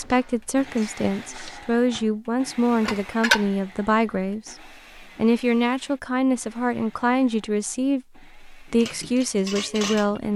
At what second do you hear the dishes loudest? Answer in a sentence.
The loudest moment of the dishes is at 3 seconds.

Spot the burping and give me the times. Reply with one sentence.
The burping can't be heard in this clip.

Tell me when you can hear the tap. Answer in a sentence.
The tap can't be heard in this clip.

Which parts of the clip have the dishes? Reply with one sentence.
The dishes can be heard from 0.0 to 3.5 s and from 8.7 to 10.2 s.